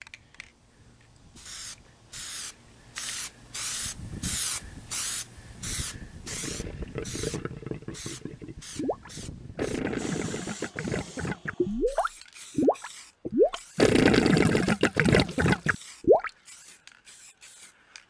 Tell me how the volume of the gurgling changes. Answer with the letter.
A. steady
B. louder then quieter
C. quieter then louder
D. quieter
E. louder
E.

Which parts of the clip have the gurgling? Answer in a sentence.
You can hear the gurgling from 6.2 to 16.3 s.